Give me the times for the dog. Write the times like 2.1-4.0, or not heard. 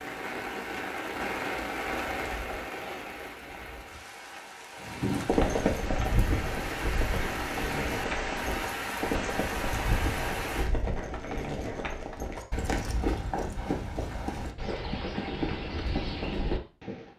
not heard.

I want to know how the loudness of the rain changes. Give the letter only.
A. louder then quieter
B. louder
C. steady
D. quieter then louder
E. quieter
D.